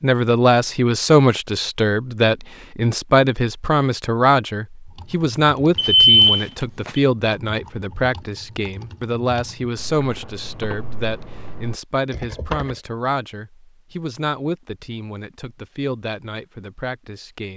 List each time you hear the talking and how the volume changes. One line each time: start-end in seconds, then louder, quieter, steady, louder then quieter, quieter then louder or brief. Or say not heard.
0.0-17.5 quieter.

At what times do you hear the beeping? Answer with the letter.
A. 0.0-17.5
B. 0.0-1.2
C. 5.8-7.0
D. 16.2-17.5
C.